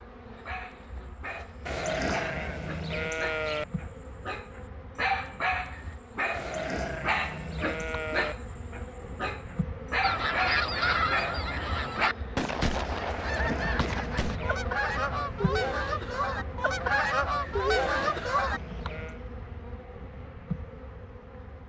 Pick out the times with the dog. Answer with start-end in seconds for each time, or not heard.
0.3-12.1.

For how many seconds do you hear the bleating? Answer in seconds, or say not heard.
7 s.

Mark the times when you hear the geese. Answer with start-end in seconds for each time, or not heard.
10.0-18.6.